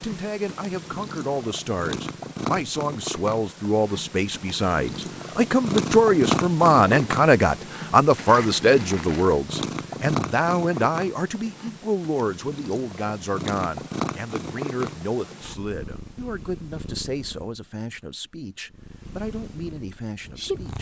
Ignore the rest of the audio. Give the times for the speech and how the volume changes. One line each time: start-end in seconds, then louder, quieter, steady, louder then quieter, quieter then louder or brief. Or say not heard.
0.0-20.7 louder then quieter.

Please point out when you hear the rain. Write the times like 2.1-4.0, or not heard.
not heard.